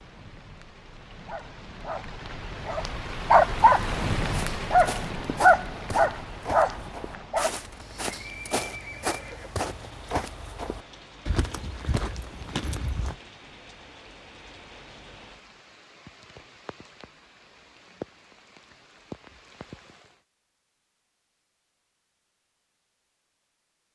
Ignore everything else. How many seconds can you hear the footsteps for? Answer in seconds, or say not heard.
9 s.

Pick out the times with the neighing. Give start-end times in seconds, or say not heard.
8.1-9.6.